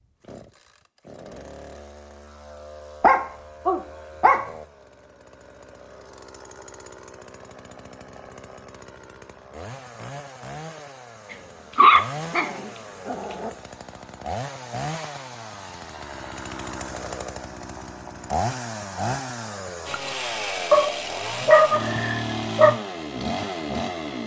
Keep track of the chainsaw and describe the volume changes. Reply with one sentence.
The volume of the chainsaw goes up.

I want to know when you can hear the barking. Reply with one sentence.
The barking can be heard from 3.0 to 4.5 s, from 11.3 to 13.5 s and from 20.7 to 22.7 s.